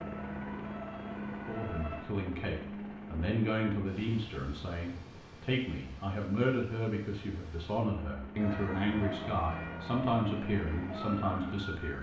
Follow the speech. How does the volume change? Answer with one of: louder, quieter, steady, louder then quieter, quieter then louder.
steady.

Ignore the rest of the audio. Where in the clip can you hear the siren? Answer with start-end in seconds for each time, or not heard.
0.0-2.0, 8.3-11.9.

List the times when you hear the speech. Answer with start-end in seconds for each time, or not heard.
1.4-11.9.